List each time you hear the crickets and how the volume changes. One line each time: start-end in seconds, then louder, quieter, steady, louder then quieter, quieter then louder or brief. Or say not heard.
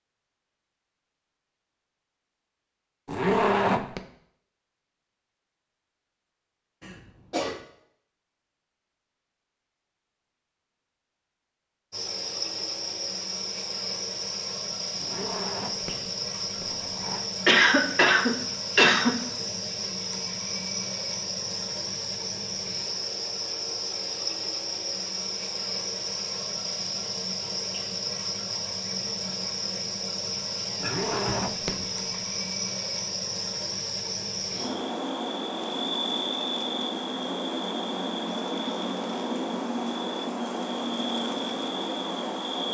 11.9-42.7 steady.